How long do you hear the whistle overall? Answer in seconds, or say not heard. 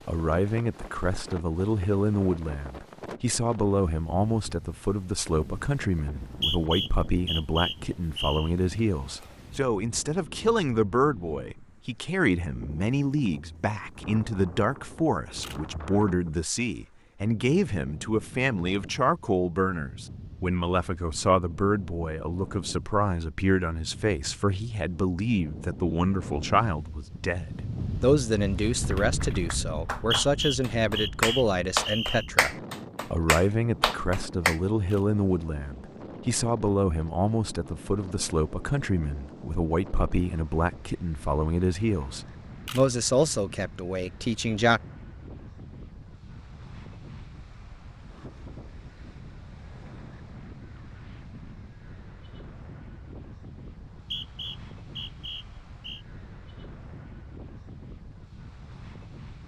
7 s.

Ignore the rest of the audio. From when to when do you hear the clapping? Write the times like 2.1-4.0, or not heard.
28.8-34.6.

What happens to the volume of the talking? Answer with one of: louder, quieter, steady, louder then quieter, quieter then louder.
steady.